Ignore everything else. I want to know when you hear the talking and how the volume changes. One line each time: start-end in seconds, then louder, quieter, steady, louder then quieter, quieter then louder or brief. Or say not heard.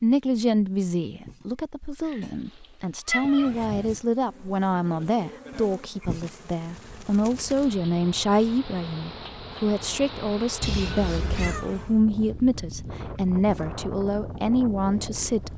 0.0-15.5 steady.